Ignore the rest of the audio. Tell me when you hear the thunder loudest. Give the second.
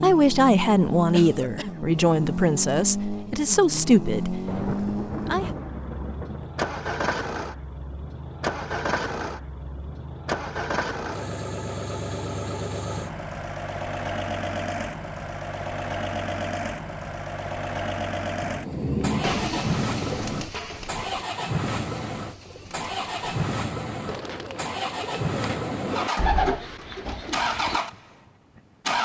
19 s.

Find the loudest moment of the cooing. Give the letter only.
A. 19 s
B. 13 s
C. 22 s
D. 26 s
D.